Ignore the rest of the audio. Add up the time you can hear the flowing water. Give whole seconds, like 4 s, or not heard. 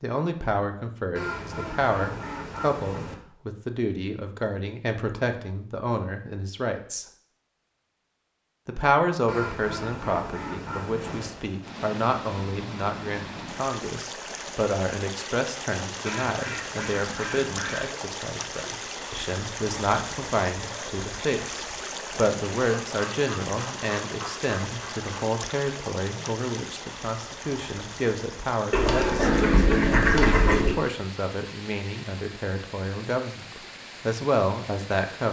24 s.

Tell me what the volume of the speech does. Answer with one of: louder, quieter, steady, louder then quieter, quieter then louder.
steady.